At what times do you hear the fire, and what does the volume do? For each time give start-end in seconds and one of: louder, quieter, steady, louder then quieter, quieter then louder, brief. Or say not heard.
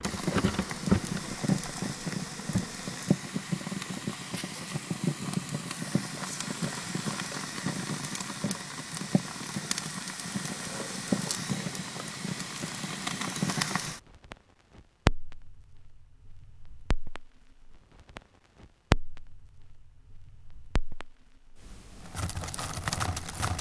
0.0-23.5 steady.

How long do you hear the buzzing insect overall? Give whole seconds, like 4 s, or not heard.
3 s.